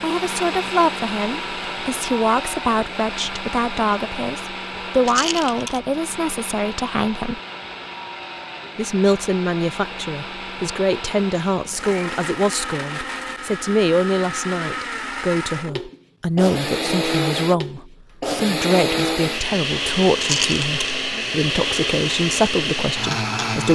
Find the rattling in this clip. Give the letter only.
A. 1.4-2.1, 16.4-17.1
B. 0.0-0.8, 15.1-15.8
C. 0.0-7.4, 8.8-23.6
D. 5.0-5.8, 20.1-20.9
D.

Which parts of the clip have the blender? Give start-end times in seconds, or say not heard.
0.0-23.6.